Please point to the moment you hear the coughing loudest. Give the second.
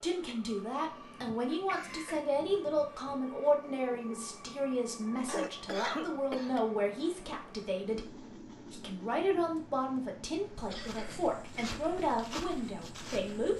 6 s.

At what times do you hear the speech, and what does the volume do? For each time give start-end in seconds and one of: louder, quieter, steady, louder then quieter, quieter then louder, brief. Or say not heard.
0.0-13.5 steady.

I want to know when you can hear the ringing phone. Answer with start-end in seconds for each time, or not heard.
not heard.